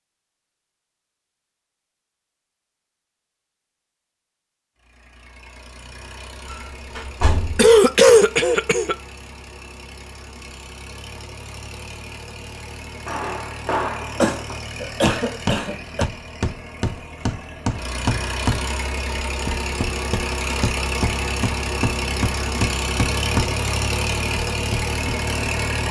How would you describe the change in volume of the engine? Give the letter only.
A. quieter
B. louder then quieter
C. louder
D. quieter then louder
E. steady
C.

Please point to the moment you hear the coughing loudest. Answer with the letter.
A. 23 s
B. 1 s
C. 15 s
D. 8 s
D.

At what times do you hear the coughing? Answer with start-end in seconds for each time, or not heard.
7.5-8.9, 14.2-16.1.